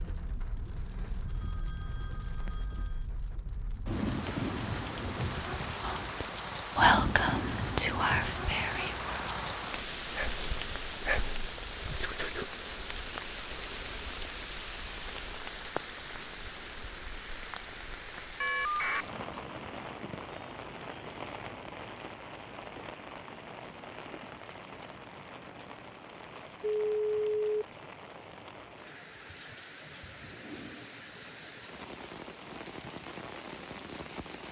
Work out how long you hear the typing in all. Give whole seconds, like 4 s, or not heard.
not heard.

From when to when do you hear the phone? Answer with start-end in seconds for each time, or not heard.
1.1-3.0, 18.4-19.1, 26.6-27.6.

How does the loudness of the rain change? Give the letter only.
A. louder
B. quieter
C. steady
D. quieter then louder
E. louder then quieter
B.